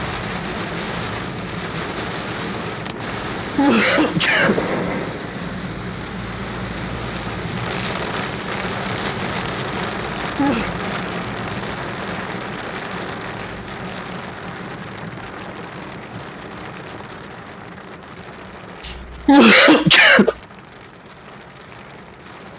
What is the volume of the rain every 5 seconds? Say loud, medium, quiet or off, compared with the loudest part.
loud, loud, loud, medium, quiet.